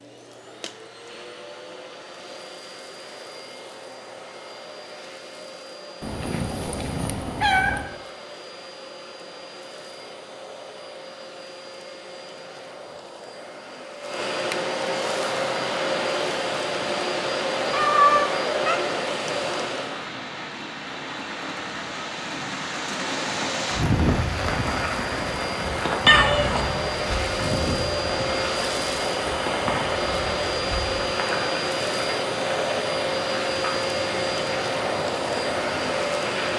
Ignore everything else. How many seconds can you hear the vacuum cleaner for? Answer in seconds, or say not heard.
34 s.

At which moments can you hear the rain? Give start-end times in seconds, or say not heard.
15.1-36.5.